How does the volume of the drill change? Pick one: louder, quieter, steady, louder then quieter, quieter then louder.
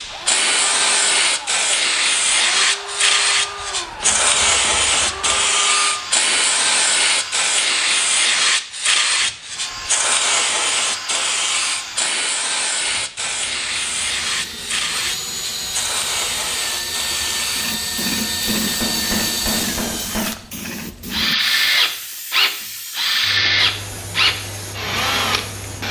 louder.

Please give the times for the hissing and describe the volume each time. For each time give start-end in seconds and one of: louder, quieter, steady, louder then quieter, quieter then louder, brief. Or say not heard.
0.0-25.8 quieter.